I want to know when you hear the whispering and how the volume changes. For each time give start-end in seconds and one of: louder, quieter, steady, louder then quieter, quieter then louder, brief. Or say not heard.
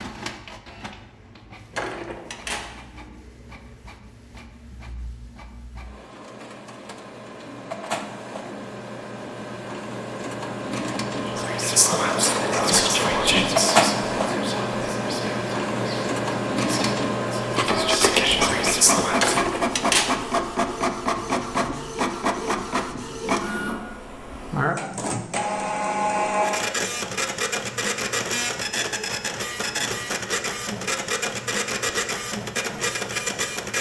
11.2-19.4 quieter then louder.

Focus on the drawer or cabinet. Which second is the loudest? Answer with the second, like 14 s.
20 s.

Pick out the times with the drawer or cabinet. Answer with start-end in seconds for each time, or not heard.
1.8-2.8, 19.2-20.2.